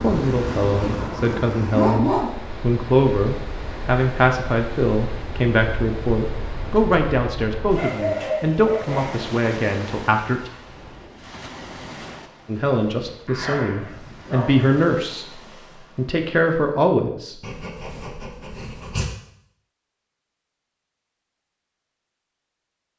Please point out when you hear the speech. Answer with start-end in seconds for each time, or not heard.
0.0-10.5, 12.4-17.5.